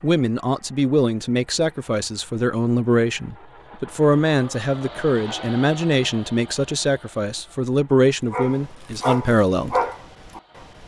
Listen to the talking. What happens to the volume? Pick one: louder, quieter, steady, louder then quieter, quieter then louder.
steady.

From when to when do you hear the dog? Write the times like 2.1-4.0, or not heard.
8.3-10.8.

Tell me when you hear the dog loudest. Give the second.
10 s.